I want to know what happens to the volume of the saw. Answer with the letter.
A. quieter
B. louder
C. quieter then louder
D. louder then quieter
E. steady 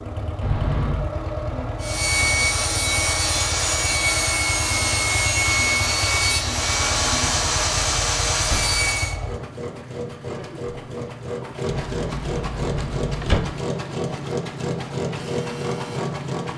E.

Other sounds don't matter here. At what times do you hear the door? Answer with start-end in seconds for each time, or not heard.
0.4-1.1, 7.1-8.8, 11.7-13.6.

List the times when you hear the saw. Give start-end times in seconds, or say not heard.
1.8-9.2.